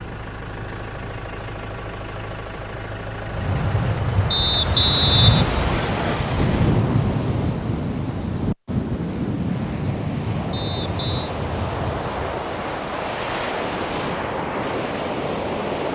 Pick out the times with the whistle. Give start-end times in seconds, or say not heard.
4.3-6.2, 10.5-11.3.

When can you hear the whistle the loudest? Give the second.
5 s.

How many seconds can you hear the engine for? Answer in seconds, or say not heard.
7 s.